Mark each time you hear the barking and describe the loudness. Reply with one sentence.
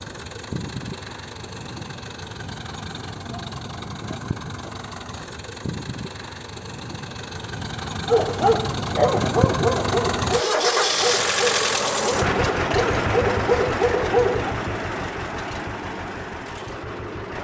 The barking can be heard from 8.1 to 14.6 s, getting quieter then louder.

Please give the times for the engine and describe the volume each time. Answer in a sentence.
The engine can be heard from 0.0 to 17.3 s, getting louder then quieter.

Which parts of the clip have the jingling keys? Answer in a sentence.
You can't hear the jingling keys here.